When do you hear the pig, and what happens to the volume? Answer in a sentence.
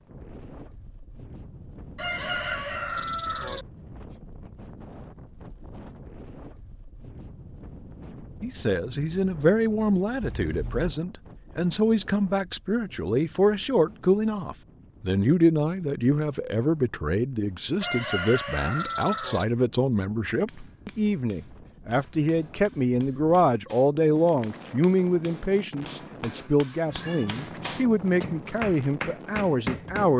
You can't hear the pig here.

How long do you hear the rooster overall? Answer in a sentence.
You can hear the rooster for 3 seconds altogether.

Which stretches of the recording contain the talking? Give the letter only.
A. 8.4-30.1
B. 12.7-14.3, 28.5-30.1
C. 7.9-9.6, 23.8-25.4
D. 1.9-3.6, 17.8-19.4
A.